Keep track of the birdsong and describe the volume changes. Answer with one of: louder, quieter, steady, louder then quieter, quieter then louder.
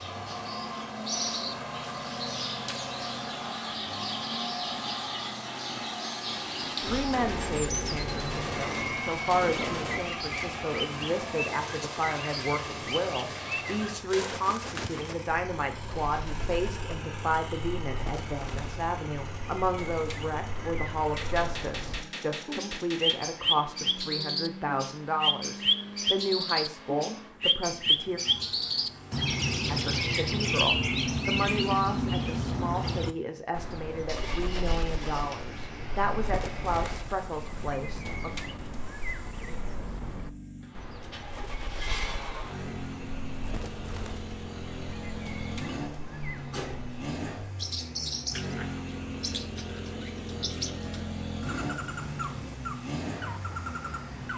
louder then quieter.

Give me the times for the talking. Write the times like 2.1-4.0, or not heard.
6.8-28.2, 29.7-38.3.